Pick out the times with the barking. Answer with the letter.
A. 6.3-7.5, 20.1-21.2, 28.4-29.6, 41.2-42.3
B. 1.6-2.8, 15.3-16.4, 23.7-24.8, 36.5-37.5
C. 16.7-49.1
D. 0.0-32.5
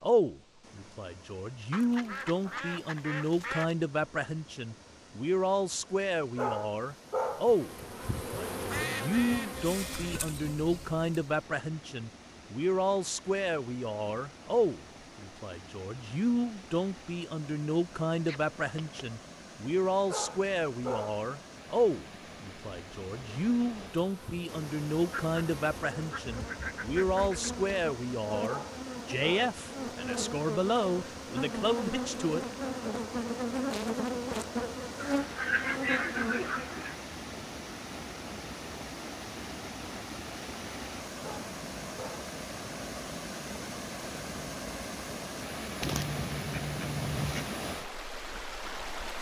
A.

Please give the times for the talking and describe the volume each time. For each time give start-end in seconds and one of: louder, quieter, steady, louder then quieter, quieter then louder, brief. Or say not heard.
0.0-32.5 steady.